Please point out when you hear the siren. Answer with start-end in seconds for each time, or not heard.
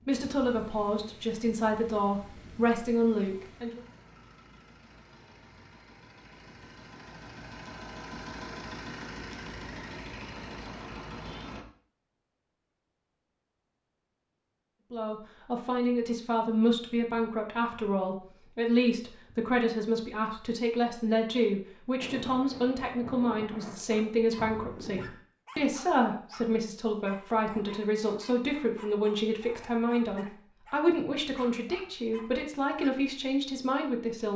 not heard.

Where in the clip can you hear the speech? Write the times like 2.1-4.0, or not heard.
0.1-3.8, 14.9-34.3.